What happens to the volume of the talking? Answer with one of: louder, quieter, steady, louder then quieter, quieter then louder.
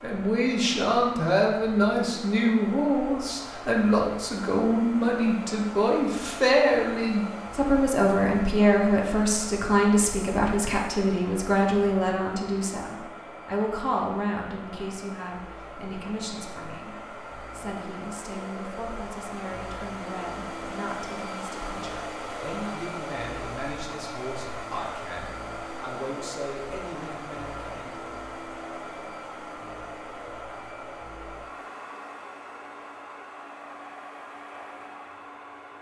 quieter.